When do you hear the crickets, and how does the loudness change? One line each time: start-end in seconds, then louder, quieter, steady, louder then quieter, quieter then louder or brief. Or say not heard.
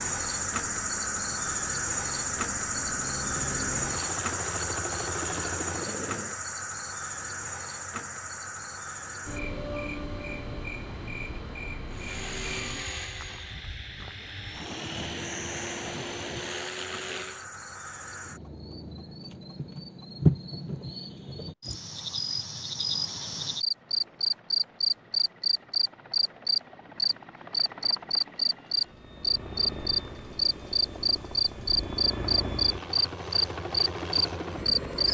0.0-35.0 quieter then louder.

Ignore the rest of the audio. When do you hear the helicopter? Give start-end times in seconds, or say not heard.
0.0-6.4, 11.9-17.4, 23.6-35.0.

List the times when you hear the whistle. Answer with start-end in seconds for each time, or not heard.
not heard.